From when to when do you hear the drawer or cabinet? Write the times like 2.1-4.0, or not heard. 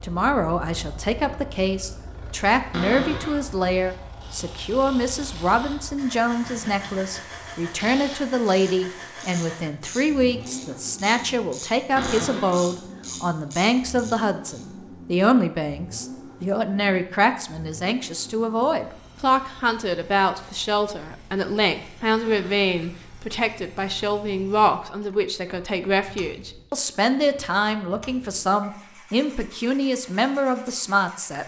2.7-3.4, 11.9-12.6, 22.2-22.7.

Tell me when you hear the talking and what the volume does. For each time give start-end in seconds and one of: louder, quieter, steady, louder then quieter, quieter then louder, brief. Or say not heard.
0.0-31.4 steady.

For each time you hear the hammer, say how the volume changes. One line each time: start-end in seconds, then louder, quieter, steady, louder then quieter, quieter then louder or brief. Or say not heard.
not heard.